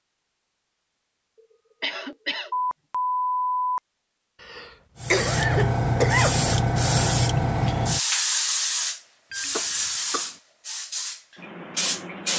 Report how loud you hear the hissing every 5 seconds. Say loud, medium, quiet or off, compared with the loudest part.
off, loud, medium.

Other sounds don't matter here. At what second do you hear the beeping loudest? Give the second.
3 s.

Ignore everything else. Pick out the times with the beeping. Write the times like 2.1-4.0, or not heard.
2.5-3.8, 9.3-9.9.